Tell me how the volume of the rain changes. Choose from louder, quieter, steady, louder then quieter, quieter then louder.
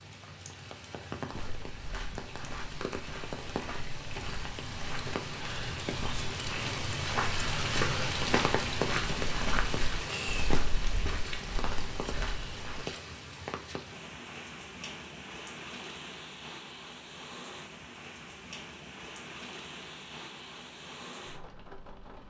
louder then quieter.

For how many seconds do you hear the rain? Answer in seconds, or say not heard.
22 s.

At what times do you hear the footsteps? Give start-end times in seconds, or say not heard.
1.3-12.8.